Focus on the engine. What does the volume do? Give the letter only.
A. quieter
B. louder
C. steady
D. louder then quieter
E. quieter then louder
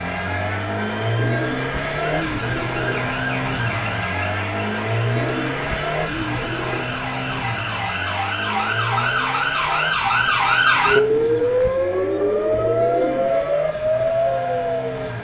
A.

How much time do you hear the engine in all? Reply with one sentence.
The engine can be heard for 15 seconds in total.